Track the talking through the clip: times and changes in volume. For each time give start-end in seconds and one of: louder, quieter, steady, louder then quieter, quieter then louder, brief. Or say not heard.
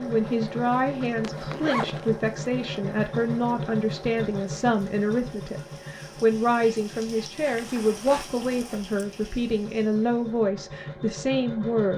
0.0-11.9 steady.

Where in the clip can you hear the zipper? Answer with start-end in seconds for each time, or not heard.
1.2-2.1, 7.4-8.3.